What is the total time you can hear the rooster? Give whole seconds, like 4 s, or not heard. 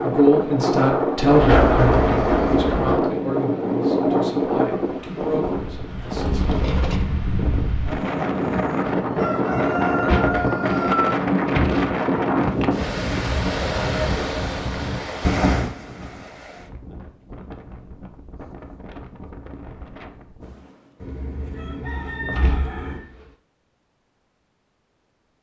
4 s.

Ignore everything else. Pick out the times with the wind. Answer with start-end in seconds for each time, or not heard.
0.0-21.1.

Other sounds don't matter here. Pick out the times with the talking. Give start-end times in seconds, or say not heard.
0.0-6.5.